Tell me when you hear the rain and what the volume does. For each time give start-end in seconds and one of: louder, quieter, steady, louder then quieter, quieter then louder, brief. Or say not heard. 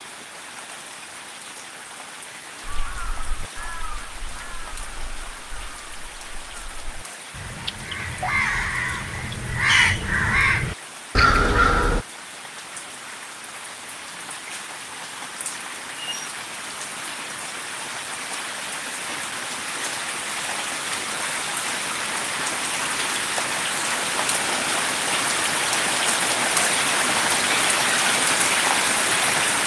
0.0-29.6 louder.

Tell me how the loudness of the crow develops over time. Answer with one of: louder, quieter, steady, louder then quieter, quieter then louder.
quieter then louder.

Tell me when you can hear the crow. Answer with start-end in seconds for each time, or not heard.
2.6-12.1.